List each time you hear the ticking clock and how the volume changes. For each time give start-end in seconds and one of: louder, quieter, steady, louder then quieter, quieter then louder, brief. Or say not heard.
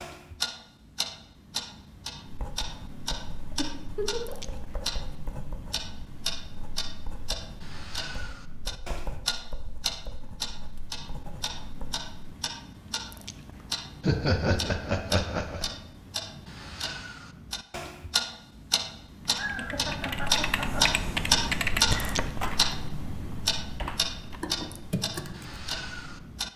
0.0-26.5 louder.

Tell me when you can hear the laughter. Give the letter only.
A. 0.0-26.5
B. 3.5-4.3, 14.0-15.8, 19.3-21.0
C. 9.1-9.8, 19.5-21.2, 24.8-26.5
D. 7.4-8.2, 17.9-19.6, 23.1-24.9
B.